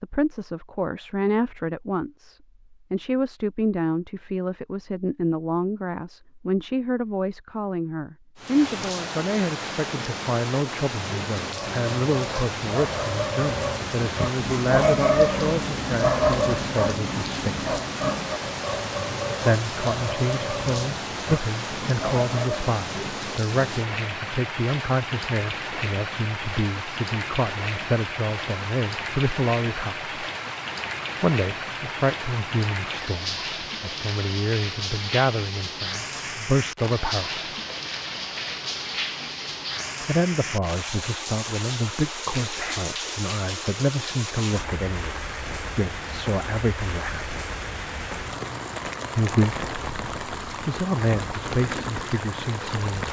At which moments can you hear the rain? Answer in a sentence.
The rain can be heard from 8.3 to 53.0 s.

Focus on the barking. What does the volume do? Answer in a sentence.
The volume of the barking goes up, then down.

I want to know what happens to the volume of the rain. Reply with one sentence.
The volume of the rain stays about the same.